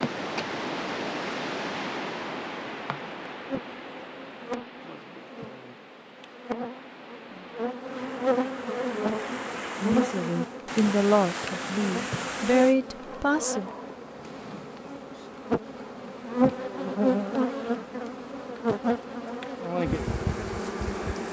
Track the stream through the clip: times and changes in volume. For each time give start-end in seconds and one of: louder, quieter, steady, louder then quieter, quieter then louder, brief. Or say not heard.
0.0-12.8 quieter then louder.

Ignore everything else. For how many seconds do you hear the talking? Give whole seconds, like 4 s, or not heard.
4 s.